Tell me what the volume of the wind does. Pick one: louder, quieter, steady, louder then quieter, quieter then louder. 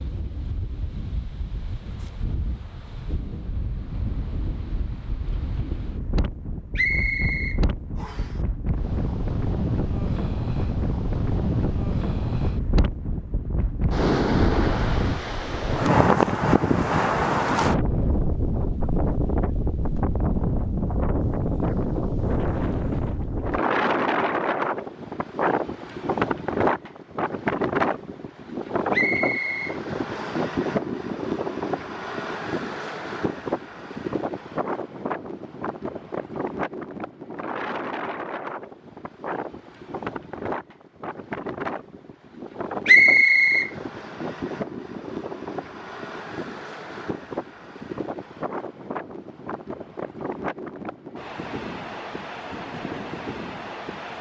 louder then quieter.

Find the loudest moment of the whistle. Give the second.
43 s.